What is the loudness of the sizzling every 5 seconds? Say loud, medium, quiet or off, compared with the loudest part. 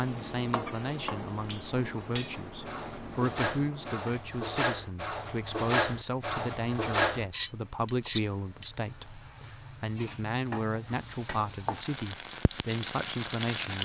loud, quiet, loud.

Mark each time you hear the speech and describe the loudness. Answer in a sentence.
The speech can be heard from 0.0 to 13.8 s, at a steady volume.